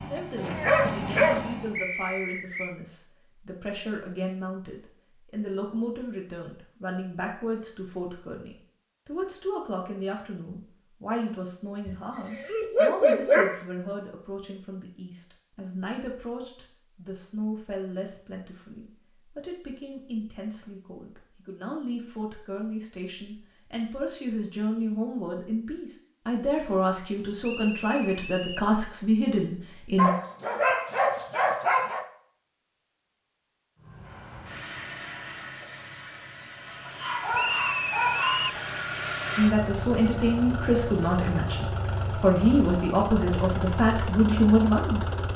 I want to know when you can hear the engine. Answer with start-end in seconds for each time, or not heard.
0.0-1.9, 33.8-45.3.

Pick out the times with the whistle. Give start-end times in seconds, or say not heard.
1.8-2.8, 27.4-28.7, 37.3-38.6.